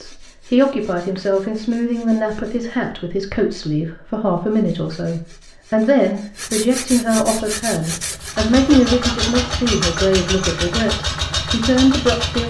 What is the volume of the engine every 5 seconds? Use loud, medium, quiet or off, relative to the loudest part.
off, loud, loud.